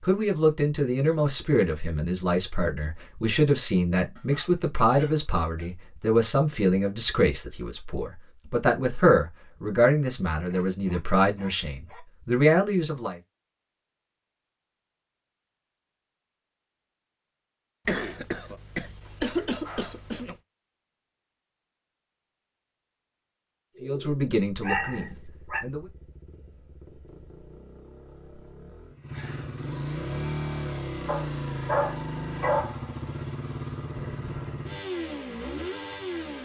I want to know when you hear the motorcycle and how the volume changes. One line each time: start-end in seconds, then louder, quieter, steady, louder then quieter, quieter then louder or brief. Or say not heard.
24.7-36.3 louder.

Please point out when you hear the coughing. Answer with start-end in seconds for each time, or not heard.
17.9-20.4.